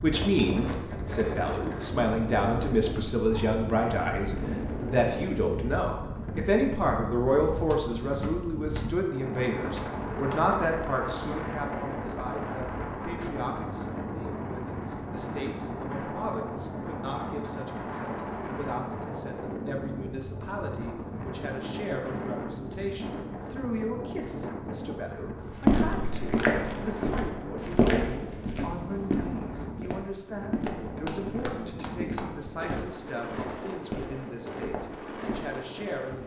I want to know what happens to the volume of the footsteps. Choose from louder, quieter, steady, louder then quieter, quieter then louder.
quieter.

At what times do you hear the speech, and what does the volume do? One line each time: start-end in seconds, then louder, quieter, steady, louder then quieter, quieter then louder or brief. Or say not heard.
0.0-36.2 quieter.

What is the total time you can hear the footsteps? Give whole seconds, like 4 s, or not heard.
10 s.